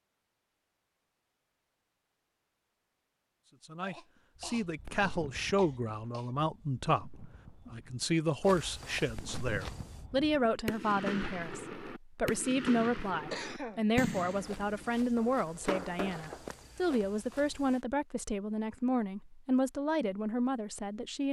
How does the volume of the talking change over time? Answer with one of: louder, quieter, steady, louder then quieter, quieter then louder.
steady.